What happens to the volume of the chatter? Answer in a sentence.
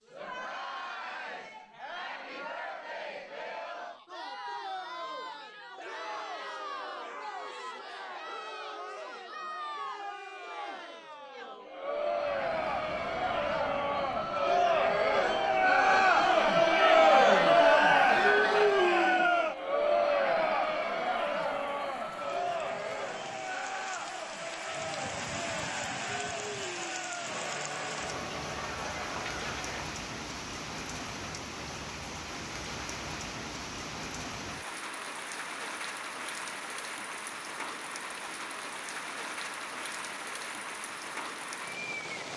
The loudness of the chatter goes up, then down.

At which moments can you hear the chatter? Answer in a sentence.
The chatter can be heard from 0.0 to 29.9 s.